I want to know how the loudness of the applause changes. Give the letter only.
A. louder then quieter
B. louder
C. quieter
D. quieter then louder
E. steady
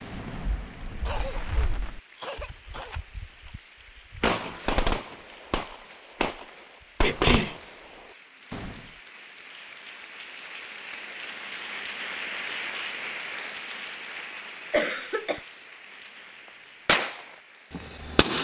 A.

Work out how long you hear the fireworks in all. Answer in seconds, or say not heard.
10 s.